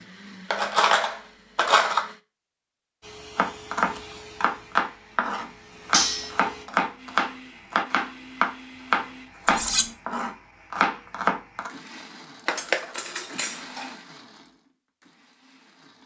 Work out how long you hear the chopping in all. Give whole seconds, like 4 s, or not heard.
8 s.